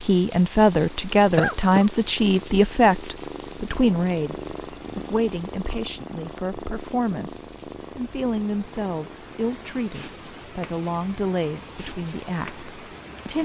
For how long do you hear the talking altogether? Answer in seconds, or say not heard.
13 s.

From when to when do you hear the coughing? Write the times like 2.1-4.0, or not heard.
1.4-1.9.